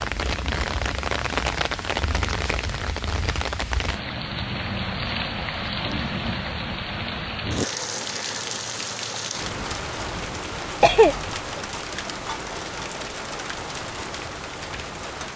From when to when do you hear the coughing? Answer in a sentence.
The coughing can be heard from 10.8 to 11.3 s.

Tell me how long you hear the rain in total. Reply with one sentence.
The rain can be heard for 15 seconds in total.